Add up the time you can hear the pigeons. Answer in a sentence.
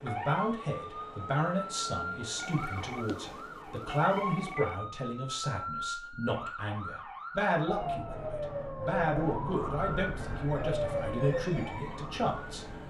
You can't hear the pigeons here.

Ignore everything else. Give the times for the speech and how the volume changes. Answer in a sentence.
The speech can be heard from 0.0 to 12.7 s, at a steady volume.